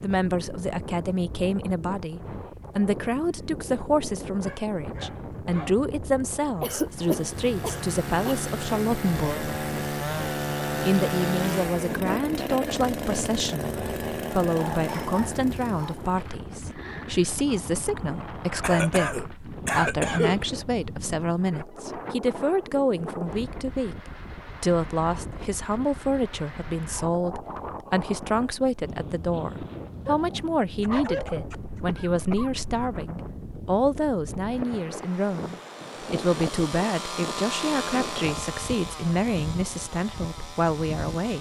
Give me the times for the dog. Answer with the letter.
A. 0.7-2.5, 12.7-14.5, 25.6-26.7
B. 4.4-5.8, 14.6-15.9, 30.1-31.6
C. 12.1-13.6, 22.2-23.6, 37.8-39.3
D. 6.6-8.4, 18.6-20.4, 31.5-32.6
B.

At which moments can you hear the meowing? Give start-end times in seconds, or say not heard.
not heard.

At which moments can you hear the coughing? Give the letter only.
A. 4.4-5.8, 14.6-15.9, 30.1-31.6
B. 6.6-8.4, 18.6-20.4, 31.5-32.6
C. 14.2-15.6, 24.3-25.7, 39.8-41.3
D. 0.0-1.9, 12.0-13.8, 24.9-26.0
B.